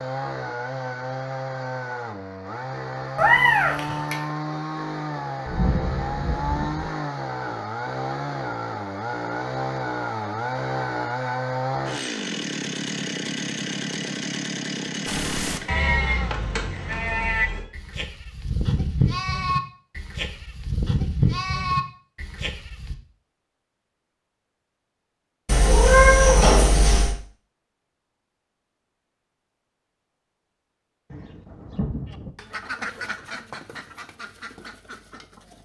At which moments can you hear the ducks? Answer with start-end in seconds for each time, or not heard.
32.1-35.6.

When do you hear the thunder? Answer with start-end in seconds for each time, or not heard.
5.5-6.9, 31.1-32.4.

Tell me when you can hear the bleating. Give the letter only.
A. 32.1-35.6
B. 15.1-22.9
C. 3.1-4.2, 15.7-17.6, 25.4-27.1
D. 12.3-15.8
B.